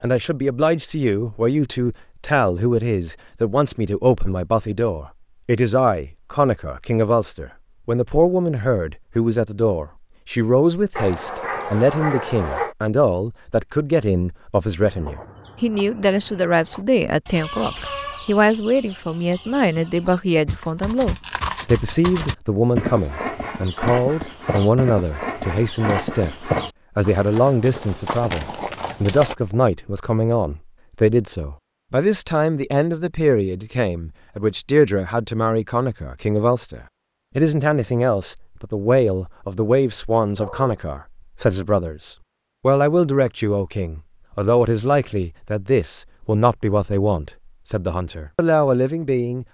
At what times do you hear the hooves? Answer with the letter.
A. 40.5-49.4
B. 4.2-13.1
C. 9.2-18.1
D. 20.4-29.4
D.